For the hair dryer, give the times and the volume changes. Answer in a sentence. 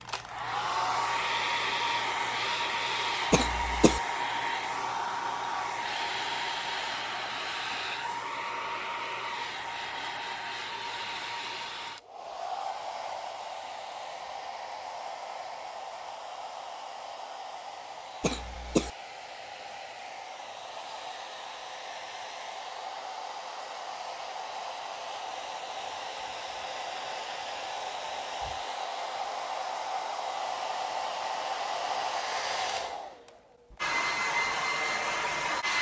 The hair dryer can be heard from 0.0 to 35.7 s, getting quieter then louder.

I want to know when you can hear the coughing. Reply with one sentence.
The coughing can be heard from 3.3 to 4.0 s and from 18.2 to 18.9 s.